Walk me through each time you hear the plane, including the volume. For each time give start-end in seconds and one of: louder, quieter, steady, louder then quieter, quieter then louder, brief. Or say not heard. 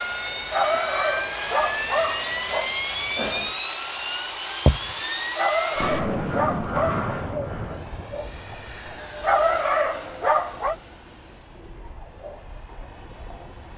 0.0-13.7 quieter.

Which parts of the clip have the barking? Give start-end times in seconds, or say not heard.
0.5-2.7, 5.3-7.1, 9.2-10.8.